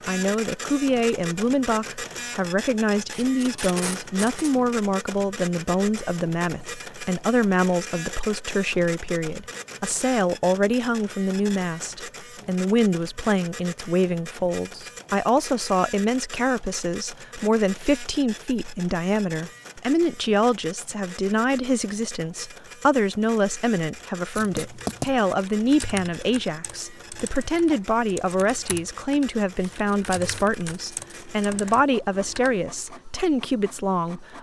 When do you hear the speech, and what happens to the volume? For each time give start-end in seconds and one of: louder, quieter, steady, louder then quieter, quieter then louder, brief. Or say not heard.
0.1-34.3 steady.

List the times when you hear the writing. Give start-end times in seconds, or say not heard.
24.4-25.1.